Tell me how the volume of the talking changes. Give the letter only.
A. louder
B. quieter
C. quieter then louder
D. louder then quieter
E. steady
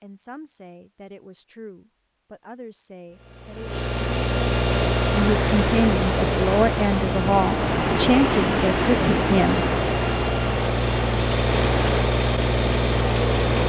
A.